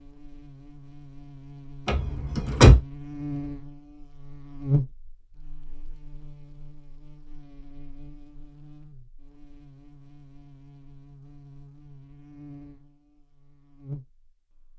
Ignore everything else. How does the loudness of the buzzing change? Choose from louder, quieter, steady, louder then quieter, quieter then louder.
louder then quieter.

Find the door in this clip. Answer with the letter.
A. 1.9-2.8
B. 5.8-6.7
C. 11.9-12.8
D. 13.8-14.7
A.